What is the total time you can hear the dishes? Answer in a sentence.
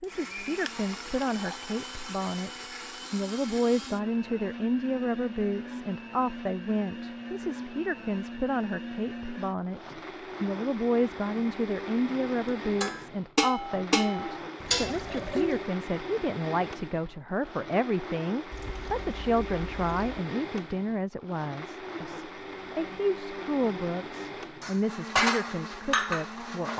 The dishes can be heard for 5 seconds in total.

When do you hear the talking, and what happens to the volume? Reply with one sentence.
You can hear the talking from 0.0 to 26.7 s, at a steady volume.